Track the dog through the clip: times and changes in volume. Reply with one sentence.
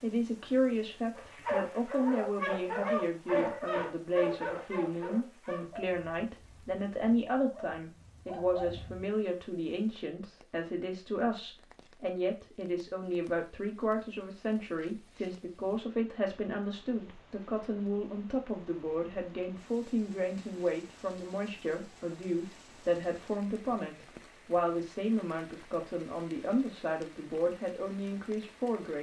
You can hear the dog from 1.1 to 9.1 s, getting quieter then louder.